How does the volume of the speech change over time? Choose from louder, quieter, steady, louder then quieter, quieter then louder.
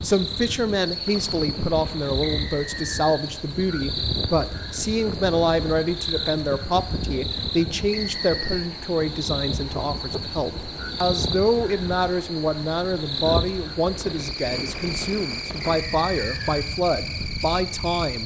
steady.